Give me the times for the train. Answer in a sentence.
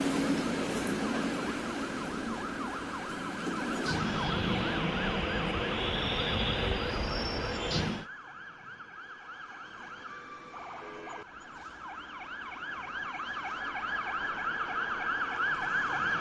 You can hear the train from 0.0 to 8.1 s.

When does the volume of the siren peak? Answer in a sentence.
The loudest moment of the siren is at 16 seconds.